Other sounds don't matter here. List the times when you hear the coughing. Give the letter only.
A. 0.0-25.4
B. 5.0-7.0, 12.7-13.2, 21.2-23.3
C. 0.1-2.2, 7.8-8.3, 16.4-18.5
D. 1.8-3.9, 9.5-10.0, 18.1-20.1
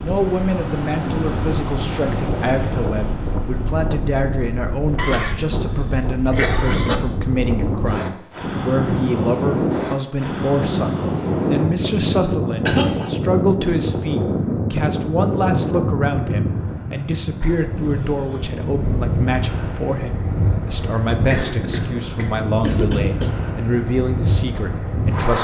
B.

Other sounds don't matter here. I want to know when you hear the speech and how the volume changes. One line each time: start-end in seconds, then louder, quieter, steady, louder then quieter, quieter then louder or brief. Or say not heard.
0.0-25.4 steady.